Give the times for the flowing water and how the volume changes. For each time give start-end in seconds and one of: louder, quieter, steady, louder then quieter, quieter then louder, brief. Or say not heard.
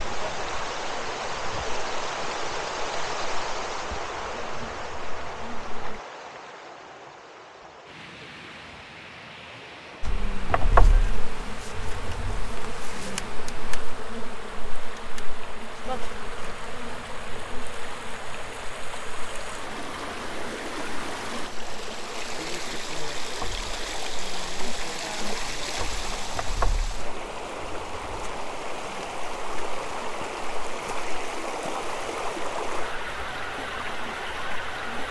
0.0-35.0 quieter then louder.